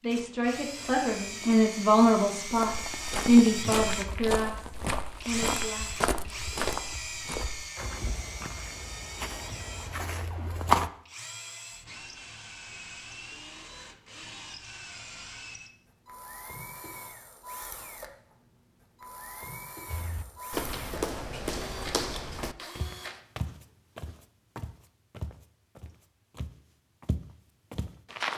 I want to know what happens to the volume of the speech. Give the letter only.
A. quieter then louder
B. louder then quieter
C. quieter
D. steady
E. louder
B.